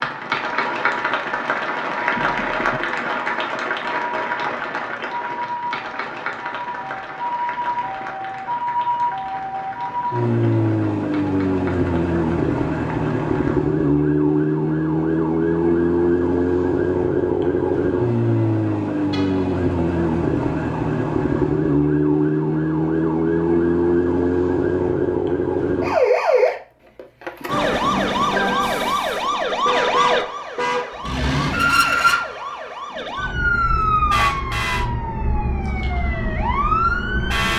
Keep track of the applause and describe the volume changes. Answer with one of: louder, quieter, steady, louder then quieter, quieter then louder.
quieter.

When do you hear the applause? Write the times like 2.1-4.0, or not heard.
0.0-13.6.